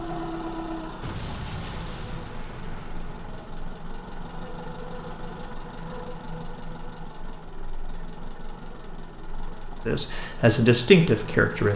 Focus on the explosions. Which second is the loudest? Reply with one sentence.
The volume of the explosions peaks at 1 second.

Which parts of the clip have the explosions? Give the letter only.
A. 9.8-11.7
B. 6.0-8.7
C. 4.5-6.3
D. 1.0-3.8
D.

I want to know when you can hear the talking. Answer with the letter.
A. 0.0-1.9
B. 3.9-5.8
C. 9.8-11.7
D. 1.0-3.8
C.